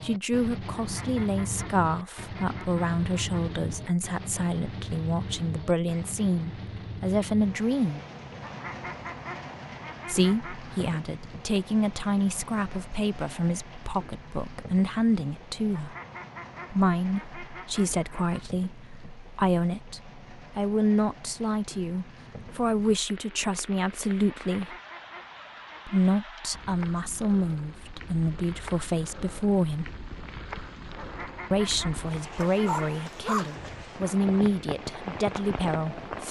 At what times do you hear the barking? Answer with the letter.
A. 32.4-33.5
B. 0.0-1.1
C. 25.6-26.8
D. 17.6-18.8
A.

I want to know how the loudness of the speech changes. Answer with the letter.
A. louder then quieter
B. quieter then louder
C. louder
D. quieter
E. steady
E.